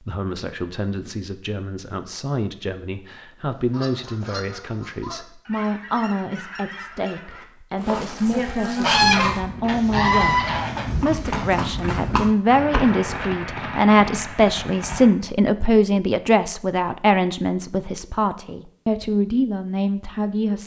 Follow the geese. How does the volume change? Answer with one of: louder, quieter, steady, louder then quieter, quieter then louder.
louder.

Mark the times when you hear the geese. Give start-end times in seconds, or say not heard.
3.5-11.7.